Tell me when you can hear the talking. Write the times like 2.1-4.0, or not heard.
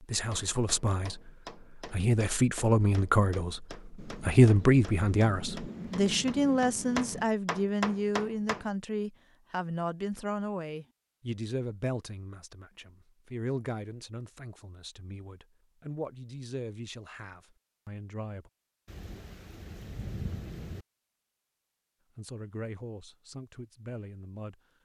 0.0-18.5, 22.1-24.6.